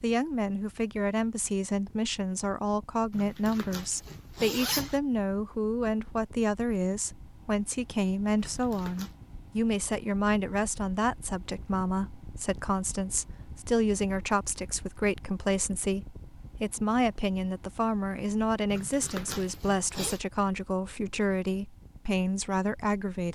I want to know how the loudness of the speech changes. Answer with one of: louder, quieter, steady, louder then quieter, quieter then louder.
steady.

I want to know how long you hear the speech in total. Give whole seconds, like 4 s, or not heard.
23 s.